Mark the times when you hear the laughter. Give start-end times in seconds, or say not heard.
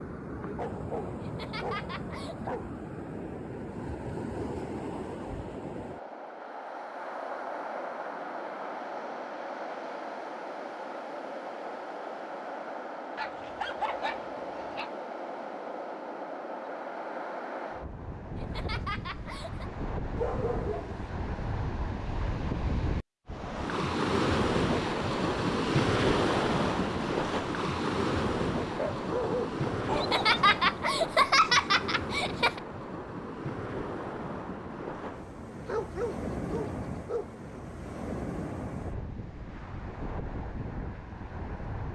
1.2-2.5, 18.4-19.7, 29.9-32.6.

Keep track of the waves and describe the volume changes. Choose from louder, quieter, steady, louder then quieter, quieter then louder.
louder then quieter.